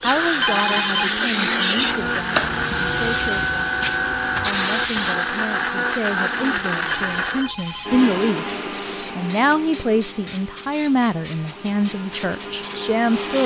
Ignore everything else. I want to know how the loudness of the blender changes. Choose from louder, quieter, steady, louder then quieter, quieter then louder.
quieter.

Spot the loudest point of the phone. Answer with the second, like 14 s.
1 s.